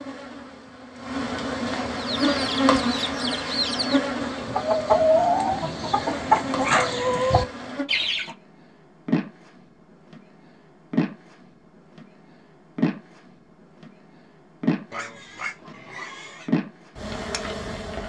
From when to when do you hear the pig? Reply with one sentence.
The pig can be heard from 14.9 to 16.5 s.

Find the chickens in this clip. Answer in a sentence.
You can hear the chickens from 1.9 to 8.3 s.